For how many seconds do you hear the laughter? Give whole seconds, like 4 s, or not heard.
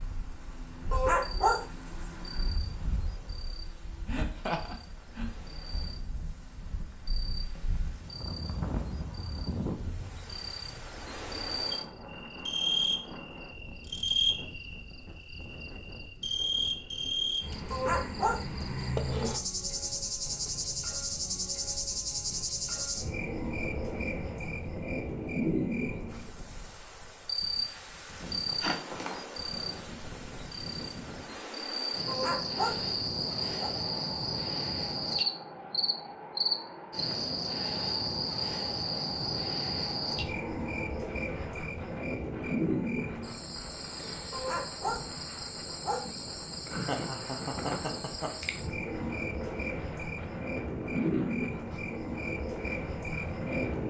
4 s.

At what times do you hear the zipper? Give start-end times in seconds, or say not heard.
not heard.